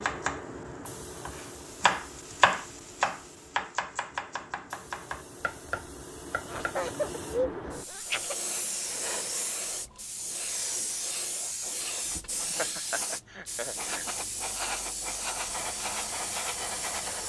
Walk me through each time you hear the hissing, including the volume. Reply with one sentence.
The hissing can be heard from 0.0 to 17.2 s, getting louder.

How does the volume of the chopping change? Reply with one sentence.
The loudness of the chopping goes up, then down.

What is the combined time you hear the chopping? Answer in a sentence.
You can hear the chopping for 7 seconds altogether.